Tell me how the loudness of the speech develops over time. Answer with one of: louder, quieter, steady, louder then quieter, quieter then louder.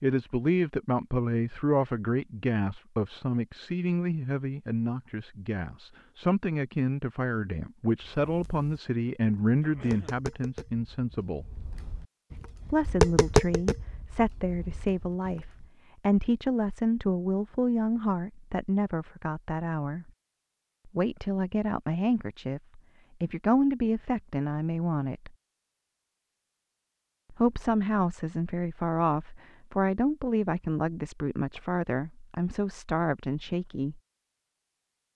steady.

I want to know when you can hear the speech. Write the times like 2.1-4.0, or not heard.
0.0-11.6, 12.7-20.1, 20.9-25.3, 27.3-34.0.